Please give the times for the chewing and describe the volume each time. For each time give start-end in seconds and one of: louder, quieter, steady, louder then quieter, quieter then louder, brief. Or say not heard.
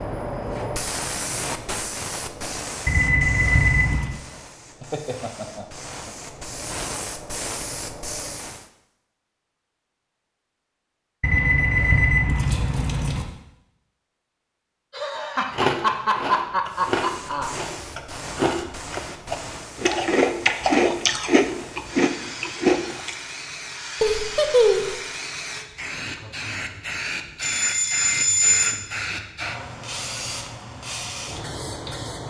15.5-23.1 louder.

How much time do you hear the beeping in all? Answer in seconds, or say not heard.
5 s.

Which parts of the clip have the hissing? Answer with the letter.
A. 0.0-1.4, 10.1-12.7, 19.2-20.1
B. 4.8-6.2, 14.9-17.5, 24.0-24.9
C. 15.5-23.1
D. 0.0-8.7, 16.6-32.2
D.